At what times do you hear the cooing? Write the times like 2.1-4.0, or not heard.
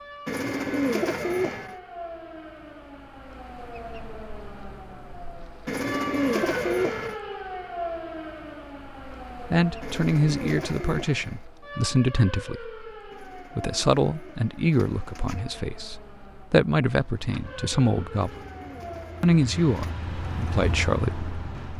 0.2-1.8, 5.7-7.2, 9.8-11.4, 13.1-15.4, 18.1-19.9.